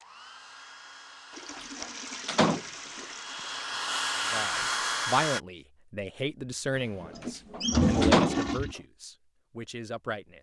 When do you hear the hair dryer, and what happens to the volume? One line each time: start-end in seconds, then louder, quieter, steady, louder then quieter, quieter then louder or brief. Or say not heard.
0.0-5.4 louder.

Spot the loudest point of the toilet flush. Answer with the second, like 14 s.
8 s.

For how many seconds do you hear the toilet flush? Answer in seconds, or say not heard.
4 s.